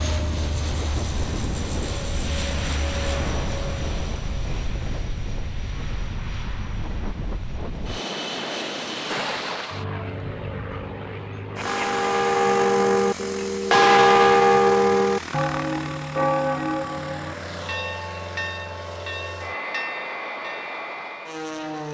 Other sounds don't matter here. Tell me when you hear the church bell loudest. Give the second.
14 s.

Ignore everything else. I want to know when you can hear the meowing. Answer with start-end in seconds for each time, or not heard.
not heard.